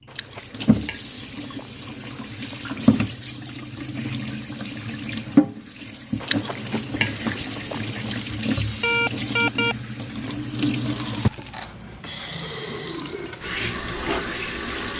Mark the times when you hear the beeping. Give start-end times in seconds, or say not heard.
8.1-9.8.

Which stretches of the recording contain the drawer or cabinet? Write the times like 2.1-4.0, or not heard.
not heard.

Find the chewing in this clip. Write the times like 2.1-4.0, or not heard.
0.1-2.6, 6.2-8.2, 10.1-12.0.